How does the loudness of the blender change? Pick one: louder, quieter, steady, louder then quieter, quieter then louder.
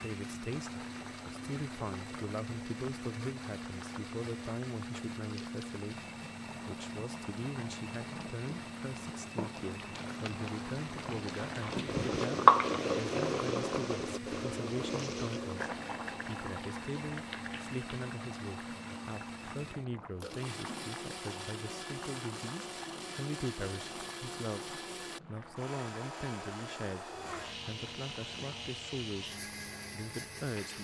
steady.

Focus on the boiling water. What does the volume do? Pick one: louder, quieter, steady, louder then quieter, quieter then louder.
louder then quieter.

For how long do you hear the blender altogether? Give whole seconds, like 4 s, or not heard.
31 s.